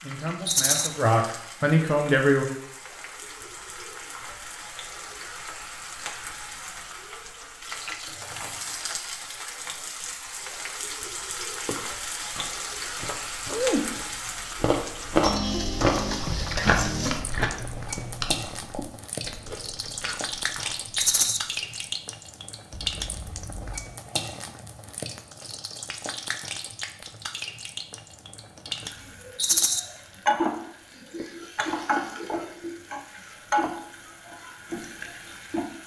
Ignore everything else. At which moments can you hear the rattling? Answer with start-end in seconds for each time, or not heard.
0.5-0.9, 20.9-21.4, 29.4-29.8.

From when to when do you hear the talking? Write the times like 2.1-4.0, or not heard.
0.0-2.5.